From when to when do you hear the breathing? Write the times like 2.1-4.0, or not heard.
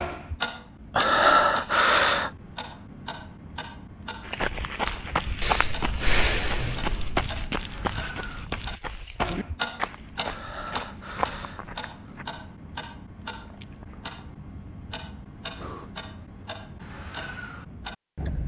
0.9-2.3, 5.4-7.5, 10.2-11.7, 15.6-16.0.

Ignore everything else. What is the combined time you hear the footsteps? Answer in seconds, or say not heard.
8 s.